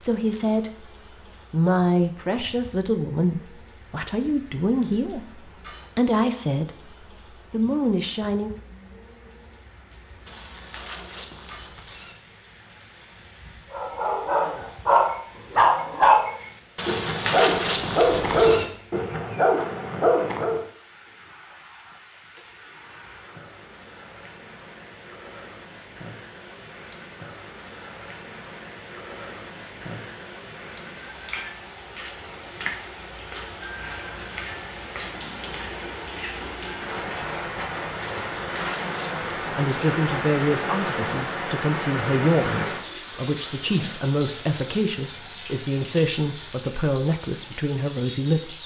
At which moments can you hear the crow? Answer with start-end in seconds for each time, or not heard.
not heard.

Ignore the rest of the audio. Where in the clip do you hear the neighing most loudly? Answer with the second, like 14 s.
17 s.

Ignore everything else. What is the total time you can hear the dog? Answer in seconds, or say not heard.
7 s.